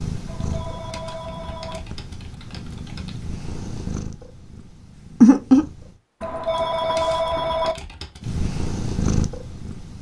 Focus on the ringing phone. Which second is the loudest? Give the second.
7 s.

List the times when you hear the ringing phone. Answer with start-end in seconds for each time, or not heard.
0.2-1.8, 6.2-7.8.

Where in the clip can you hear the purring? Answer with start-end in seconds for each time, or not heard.
0.0-5.9, 8.2-9.9.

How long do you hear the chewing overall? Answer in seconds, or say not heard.
not heard.